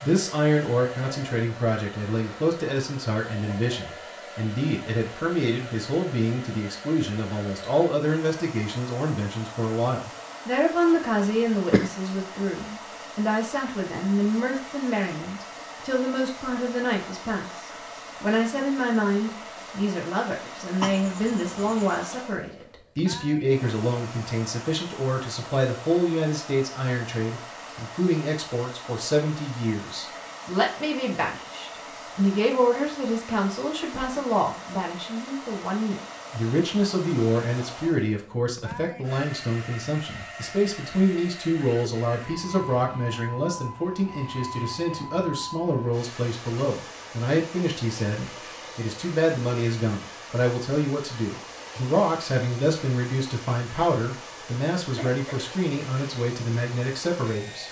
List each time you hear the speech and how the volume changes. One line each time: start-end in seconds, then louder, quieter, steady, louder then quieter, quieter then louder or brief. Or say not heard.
0.0-57.6 steady.